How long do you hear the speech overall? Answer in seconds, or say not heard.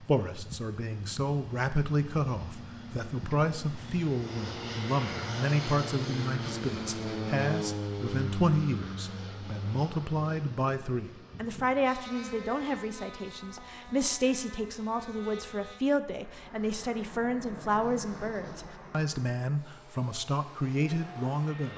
22 s.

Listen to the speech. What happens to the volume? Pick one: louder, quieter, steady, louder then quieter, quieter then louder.
steady.